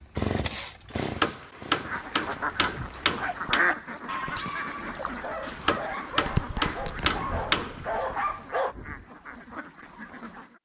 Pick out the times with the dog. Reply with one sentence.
You can hear the dog from 2.7 to 8.8 s.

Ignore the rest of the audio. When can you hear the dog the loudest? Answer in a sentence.
The volume of the dog peaks at 8 seconds.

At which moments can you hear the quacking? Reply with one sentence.
You can hear the quacking from 1.7 to 10.5 s.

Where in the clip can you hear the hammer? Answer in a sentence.
You can hear the hammer from 0.9 to 3.6 s and from 5.4 to 7.8 s.